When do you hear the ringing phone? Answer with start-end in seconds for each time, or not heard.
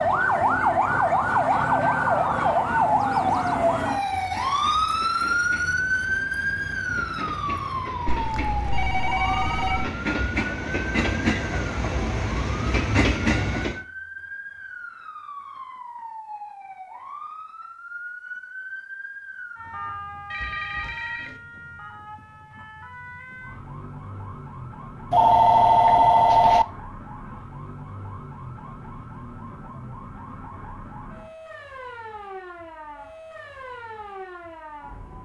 8.1-9.9, 20.3-21.4, 25.1-26.6.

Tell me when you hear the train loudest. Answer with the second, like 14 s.
13 s.